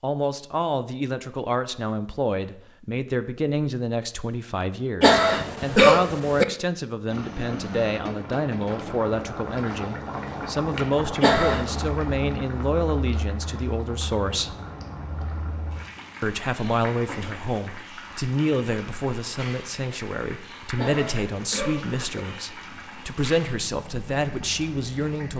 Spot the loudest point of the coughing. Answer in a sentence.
The loudest moment of the coughing is at 6 seconds.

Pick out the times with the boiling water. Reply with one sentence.
The boiling water can be heard from 7.0 to 25.3 s.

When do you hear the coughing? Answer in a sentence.
You can hear the coughing from 5.0 to 6.5 s, from 11.2 to 11.9 s and from 20.8 to 22.1 s.